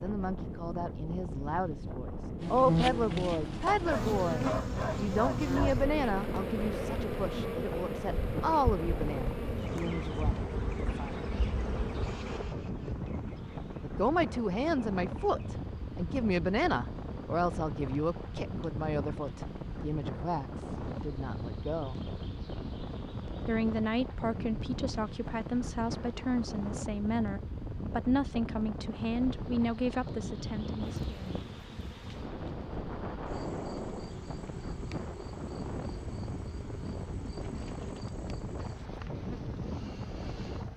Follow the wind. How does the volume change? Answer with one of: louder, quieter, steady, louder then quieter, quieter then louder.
steady.